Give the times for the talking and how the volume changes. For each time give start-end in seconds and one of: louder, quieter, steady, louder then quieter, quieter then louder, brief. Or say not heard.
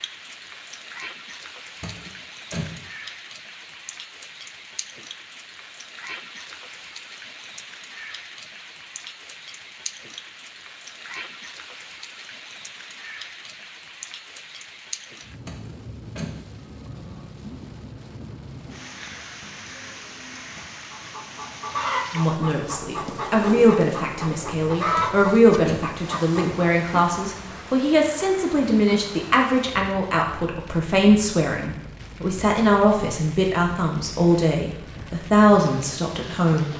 22.1-36.7 steady.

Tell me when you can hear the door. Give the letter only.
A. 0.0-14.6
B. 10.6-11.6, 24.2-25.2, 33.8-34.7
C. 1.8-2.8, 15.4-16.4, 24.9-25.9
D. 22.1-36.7
C.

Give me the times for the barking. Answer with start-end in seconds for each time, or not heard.
not heard.